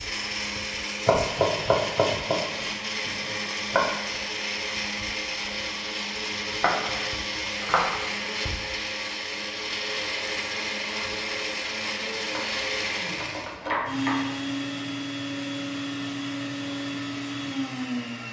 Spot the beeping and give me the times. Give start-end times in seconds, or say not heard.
not heard.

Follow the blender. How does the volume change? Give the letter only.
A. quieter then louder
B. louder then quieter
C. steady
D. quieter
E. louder
C.